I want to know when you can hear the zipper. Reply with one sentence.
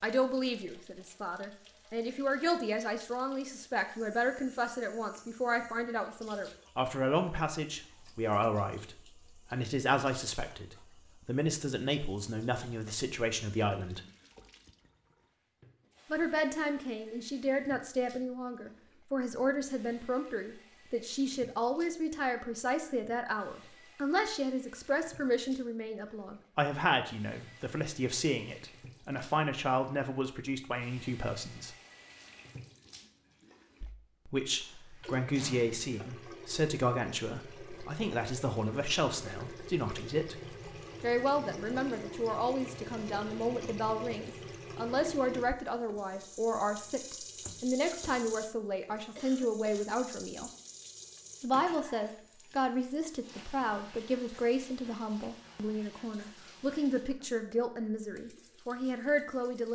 The zipper can't be heard in this clip.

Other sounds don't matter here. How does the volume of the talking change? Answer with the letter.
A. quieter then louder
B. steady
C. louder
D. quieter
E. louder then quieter
B.